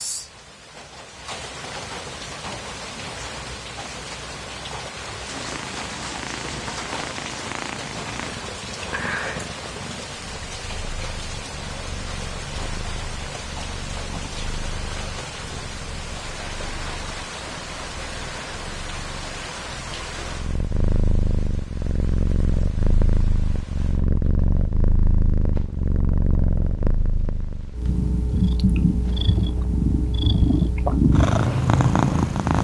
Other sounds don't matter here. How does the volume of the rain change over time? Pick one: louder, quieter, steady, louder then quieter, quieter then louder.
quieter.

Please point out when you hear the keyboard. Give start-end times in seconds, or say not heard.
not heard.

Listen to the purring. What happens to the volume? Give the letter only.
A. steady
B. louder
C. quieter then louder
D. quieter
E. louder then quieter
C.